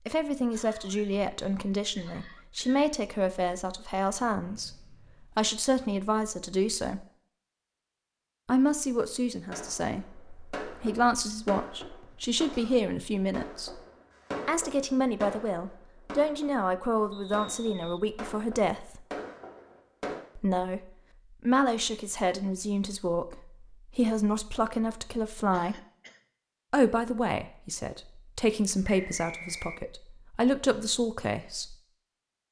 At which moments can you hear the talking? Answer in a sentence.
You can hear the talking from 0.1 to 7.0 s, from 8.4 to 13.8 s, from 14.4 to 19.1 s, from 20.4 to 25.8 s and from 26.7 to 31.8 s.